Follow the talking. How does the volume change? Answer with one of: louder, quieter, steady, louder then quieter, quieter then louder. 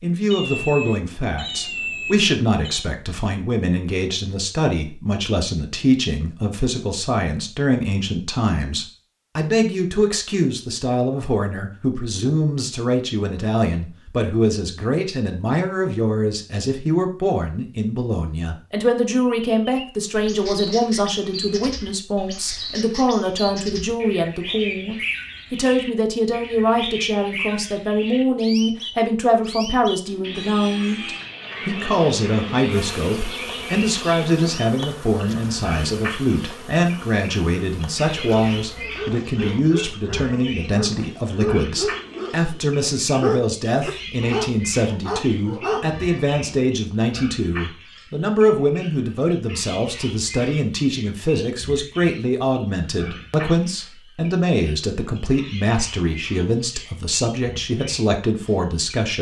steady.